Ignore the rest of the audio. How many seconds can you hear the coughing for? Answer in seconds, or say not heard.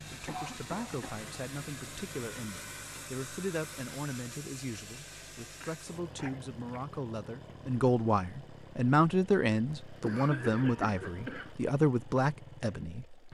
4 s.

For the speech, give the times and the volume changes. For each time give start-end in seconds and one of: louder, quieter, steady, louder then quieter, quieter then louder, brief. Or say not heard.
0.0-13.2 louder.